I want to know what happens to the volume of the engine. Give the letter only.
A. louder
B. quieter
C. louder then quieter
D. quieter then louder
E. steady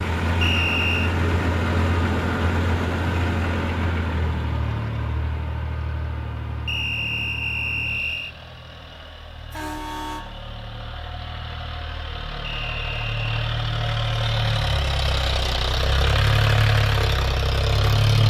D.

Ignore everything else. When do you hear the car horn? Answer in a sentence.
You can hear the car horn from 9.5 to 10.2 s.